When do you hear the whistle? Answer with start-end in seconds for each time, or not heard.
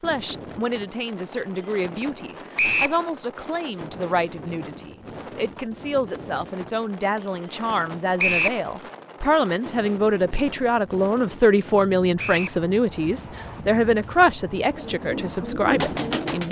2.5-3.0, 8.2-8.6, 12.2-12.6.